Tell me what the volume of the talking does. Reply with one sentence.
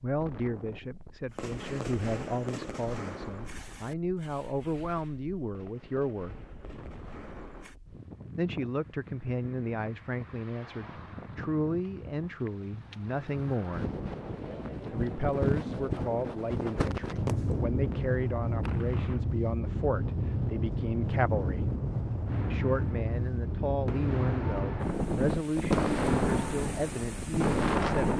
The loudness of the talking stays about the same.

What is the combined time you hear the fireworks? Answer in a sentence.
You can hear the fireworks for 14 seconds altogether.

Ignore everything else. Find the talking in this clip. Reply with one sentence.
You can hear the talking from 0.0 to 6.3 s, from 8.3 to 13.9 s, from 14.9 to 21.7 s and from 22.5 to 28.1 s.